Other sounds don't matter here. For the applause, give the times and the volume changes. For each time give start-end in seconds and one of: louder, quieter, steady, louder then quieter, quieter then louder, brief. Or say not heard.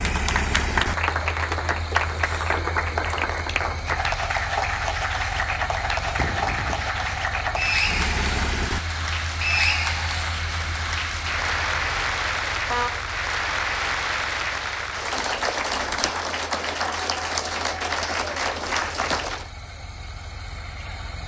0.0-19.5 steady.